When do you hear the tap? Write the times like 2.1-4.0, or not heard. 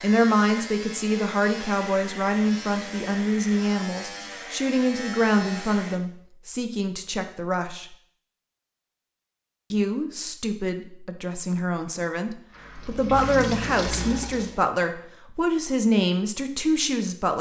12.5-14.6.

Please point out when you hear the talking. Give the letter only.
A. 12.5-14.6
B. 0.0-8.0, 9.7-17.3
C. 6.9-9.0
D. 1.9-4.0
B.